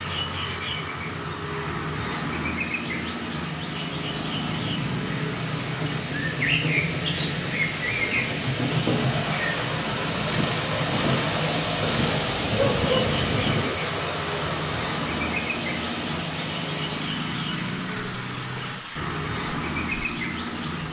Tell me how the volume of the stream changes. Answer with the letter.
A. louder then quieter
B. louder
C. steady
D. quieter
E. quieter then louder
A.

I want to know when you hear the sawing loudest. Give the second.
9 s.